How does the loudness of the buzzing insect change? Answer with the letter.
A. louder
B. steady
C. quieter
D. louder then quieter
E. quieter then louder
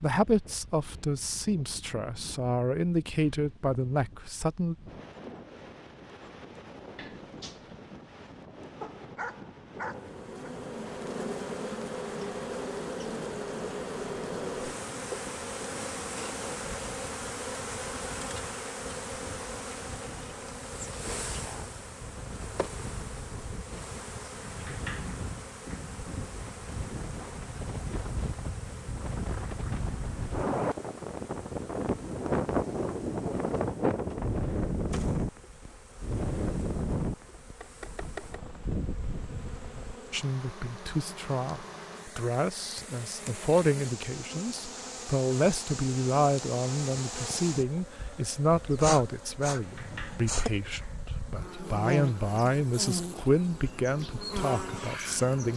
E.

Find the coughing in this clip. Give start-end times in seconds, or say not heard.
not heard.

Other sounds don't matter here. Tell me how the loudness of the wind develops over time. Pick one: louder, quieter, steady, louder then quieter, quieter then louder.
louder.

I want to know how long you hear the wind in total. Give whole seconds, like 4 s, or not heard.
40 s.